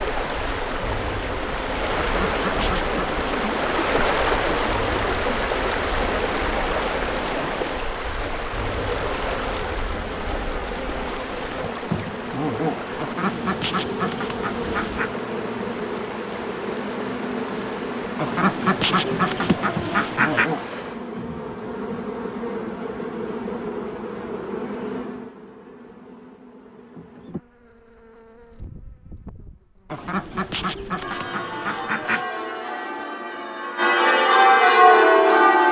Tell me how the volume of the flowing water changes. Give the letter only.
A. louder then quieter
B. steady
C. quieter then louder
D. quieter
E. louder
D.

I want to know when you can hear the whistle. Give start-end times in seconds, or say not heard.
not heard.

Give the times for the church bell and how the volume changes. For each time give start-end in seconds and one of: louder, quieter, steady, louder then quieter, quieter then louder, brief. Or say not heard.
31.0-35.6 louder.